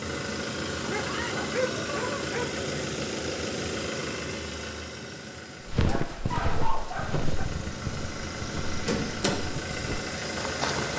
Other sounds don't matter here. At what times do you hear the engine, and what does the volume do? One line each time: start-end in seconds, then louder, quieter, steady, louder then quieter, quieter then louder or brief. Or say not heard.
0.0-10.9 quieter then louder.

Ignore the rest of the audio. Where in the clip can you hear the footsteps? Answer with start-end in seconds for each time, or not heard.
5.7-10.9.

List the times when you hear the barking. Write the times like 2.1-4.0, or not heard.
0.8-2.6, 5.8-7.3.